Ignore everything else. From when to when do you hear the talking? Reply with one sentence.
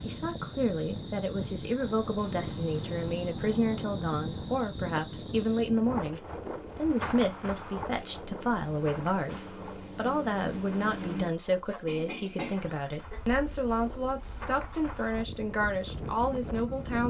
You can hear the talking from 0.0 to 17.0 s.